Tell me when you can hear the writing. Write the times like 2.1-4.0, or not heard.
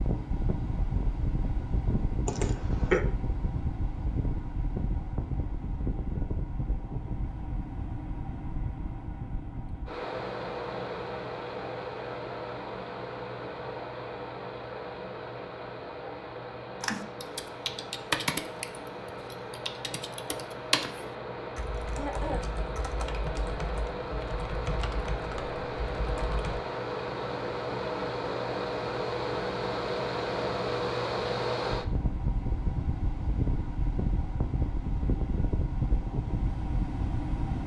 not heard.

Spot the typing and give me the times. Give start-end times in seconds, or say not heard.
16.8-26.6.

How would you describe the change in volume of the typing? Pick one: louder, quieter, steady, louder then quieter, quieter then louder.
quieter.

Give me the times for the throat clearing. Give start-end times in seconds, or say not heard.
2.2-3.0, 21.9-22.4.